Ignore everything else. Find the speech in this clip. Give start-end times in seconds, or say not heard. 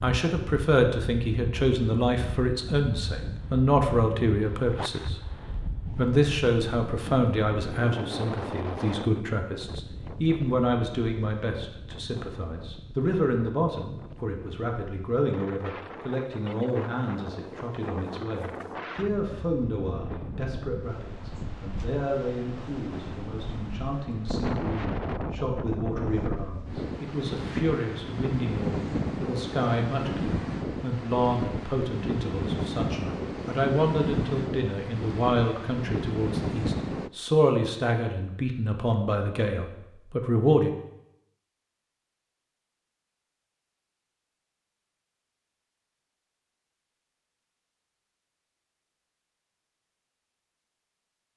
0.0-40.8.